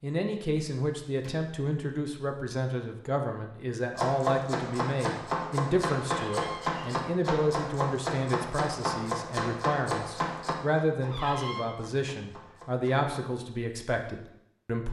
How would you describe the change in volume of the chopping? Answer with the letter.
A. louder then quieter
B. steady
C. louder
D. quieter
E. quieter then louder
D.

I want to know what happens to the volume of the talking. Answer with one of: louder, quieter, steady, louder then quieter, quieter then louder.
steady.